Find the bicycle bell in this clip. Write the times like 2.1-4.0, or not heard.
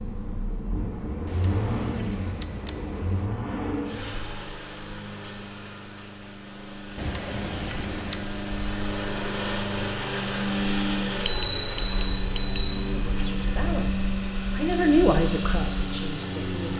1.2-3.3, 7.0-8.3, 11.2-12.8.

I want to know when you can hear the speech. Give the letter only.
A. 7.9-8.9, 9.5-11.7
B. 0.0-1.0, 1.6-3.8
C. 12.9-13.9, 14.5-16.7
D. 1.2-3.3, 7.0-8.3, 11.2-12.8
C.